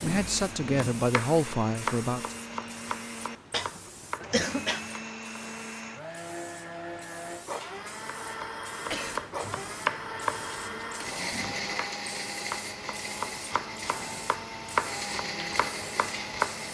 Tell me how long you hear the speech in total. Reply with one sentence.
You can hear the speech for 2 seconds altogether.